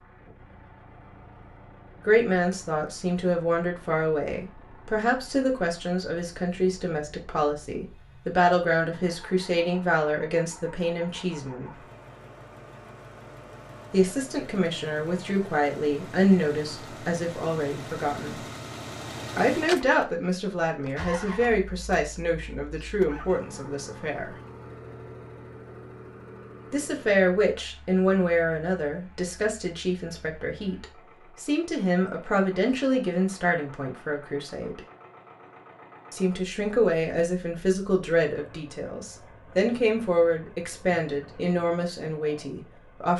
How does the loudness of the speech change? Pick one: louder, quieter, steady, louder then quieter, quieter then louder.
steady.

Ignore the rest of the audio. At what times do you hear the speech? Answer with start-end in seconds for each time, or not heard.
2.0-11.7, 13.9-18.4, 19.4-24.4, 26.7-34.8, 36.1-43.1.